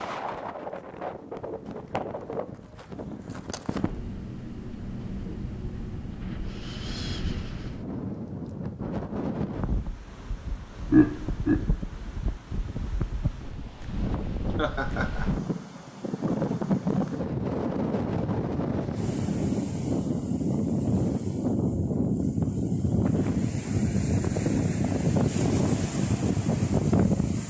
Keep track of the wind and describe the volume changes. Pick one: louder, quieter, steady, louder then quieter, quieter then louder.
louder.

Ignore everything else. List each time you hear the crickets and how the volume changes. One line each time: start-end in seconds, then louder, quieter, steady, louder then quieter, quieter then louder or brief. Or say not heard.
not heard.